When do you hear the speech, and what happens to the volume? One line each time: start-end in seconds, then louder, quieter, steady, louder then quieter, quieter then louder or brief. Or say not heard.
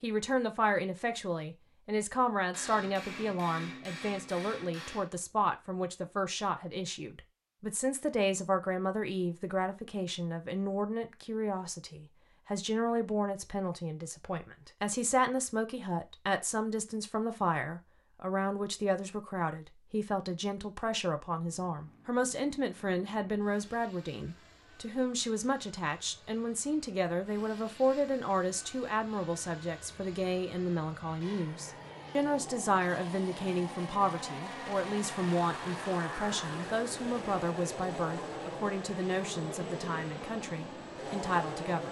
0.0-41.8 steady.